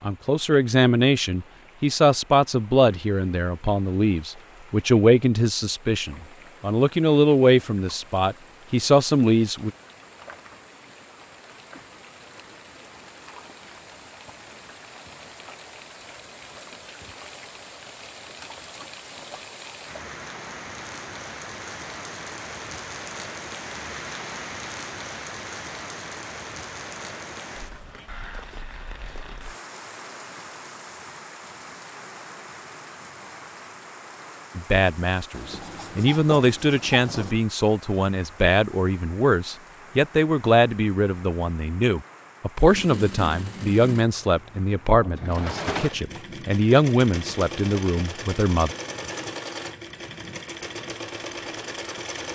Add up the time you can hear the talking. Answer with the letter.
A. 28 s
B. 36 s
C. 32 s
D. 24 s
D.